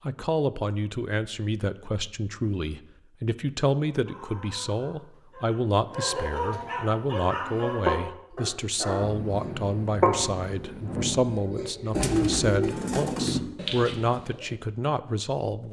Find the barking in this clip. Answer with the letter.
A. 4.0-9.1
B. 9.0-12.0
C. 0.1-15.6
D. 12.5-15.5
A.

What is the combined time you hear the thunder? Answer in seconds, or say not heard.
3 s.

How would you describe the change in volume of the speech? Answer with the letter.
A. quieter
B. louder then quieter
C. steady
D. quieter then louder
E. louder
C.